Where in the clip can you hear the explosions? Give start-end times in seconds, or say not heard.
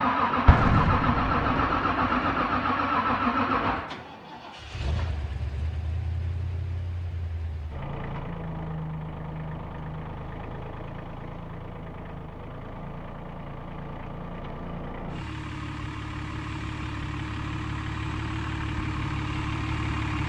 0.5-1.6.